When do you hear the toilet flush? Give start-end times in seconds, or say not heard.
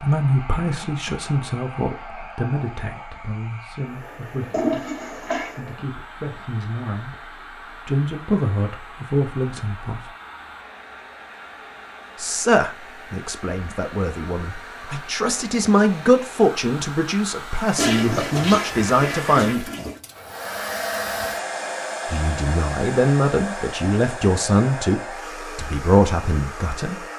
4.5-5.6, 17.8-20.0.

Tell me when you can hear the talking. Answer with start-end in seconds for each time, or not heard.
0.0-10.1, 12.2-19.7, 22.1-26.9.